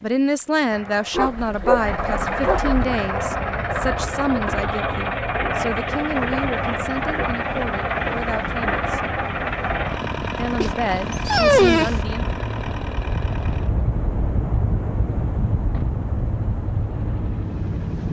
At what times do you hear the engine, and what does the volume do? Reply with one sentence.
The engine can be heard from 0.0 to 18.0 s, getting quieter.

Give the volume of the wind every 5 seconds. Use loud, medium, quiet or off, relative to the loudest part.
medium, medium, loud, loud.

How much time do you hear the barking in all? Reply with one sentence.
The barking can be heard for 3 seconds in total.